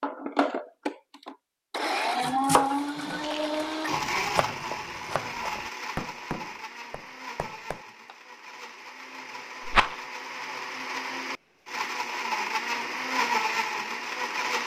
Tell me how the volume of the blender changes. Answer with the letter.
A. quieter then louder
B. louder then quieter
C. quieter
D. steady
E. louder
A.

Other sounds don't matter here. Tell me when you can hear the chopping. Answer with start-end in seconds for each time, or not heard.
2.2-8.2.